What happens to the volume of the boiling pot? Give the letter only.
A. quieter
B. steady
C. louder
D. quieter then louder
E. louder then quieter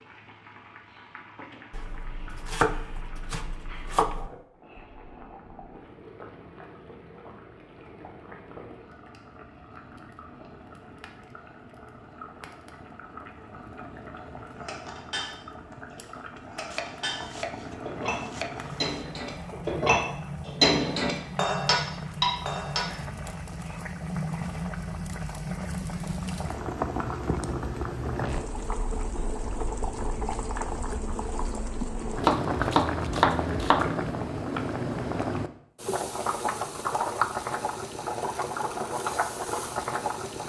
C.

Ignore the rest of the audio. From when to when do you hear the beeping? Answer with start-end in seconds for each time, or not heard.
not heard.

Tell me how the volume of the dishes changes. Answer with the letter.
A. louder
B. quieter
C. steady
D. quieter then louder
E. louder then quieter
A.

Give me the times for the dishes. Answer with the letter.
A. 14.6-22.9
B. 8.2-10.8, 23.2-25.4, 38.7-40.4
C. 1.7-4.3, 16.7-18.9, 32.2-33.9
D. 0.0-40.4
A.